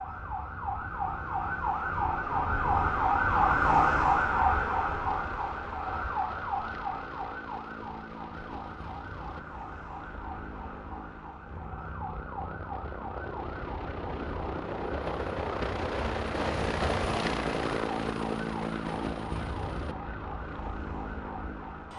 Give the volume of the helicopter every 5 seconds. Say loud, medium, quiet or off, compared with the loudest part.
quiet, quiet, medium, loud, medium.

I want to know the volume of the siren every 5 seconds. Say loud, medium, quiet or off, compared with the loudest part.
loud, medium, quiet, quiet, quiet.